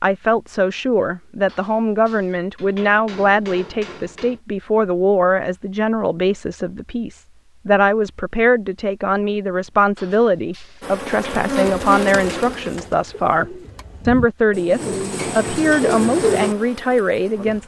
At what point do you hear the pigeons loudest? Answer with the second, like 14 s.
16 s.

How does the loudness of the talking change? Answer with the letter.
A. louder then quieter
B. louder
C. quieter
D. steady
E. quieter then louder
D.